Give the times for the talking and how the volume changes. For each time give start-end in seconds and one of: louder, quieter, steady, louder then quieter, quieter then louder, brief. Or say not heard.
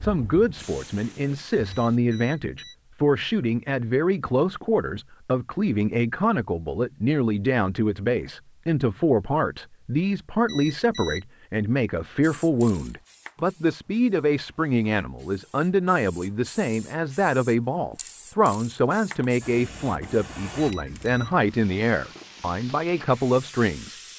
0.0-23.9 steady.